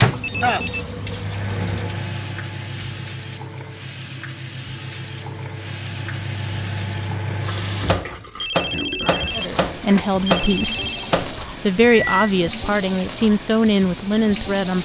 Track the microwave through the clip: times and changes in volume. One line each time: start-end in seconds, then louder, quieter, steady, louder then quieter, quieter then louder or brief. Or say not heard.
0.0-12.3 quieter then louder.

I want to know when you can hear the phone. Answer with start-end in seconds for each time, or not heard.
0.2-0.8, 8.3-11.1.